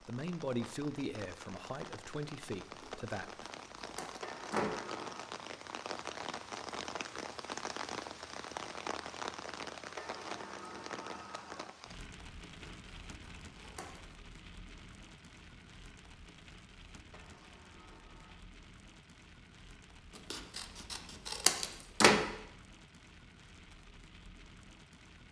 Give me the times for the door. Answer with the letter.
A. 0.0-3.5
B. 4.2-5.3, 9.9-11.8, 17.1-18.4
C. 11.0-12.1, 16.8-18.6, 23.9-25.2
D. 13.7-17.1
B.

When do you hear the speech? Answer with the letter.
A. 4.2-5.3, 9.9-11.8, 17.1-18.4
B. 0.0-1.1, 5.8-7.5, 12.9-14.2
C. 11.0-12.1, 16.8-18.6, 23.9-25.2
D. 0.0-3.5
D.